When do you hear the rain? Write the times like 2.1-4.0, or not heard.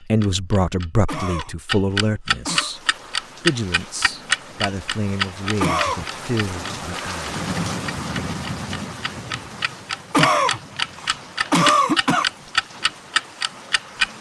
2.5-14.1.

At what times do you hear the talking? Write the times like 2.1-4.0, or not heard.
0.1-2.8, 3.4-7.3.